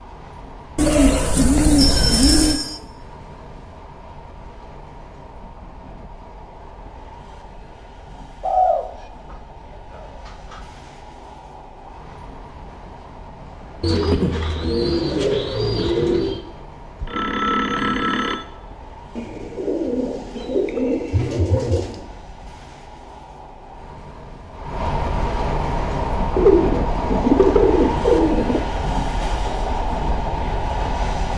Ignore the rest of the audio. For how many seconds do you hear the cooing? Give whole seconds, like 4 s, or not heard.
11 s.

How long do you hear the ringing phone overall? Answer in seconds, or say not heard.
3 s.